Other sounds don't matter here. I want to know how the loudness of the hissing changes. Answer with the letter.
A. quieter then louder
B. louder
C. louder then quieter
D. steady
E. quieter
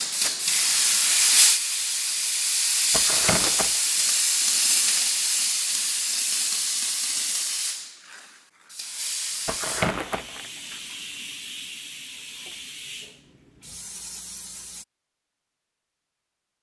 E.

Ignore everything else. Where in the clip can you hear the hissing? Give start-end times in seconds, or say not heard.
0.0-14.8.